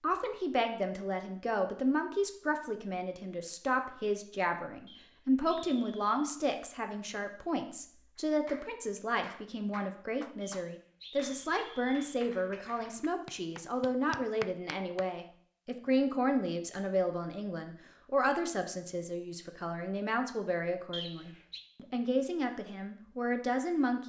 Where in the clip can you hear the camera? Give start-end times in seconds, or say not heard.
not heard.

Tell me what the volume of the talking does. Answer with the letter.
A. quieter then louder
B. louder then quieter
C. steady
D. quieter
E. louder
C.